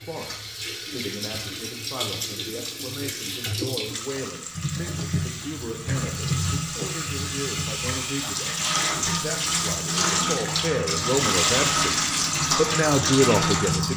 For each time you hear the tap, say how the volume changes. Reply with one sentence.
The tap can be heard from 0.0 to 13.9 s, getting louder.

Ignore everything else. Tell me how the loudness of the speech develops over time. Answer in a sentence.
The volume of the speech goes up.